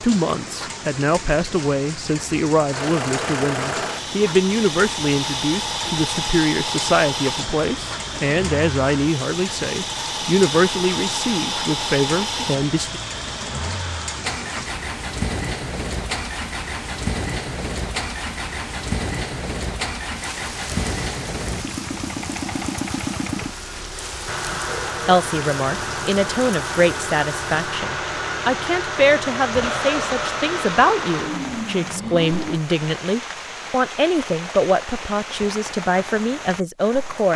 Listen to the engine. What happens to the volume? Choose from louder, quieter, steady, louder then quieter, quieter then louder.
steady.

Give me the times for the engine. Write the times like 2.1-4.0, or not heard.
2.7-32.6.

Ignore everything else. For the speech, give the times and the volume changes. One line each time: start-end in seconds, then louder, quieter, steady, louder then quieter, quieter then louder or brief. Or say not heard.
0.0-13.0 steady
25.1-37.3 steady.